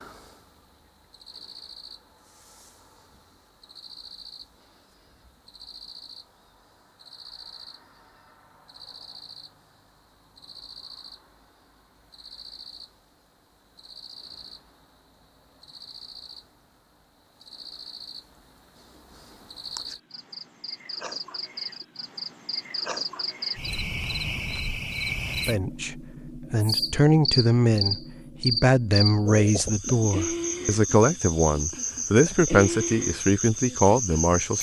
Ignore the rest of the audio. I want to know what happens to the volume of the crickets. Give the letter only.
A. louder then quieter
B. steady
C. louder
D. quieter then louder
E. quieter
C.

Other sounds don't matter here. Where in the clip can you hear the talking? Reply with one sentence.
The talking can be heard from 25.4 to 34.5 s.